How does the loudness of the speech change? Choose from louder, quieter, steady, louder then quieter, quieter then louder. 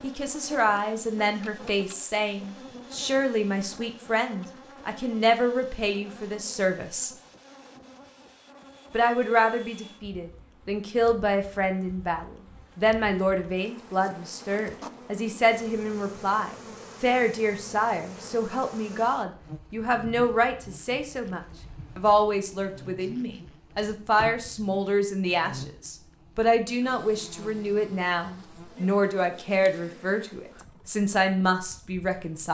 steady.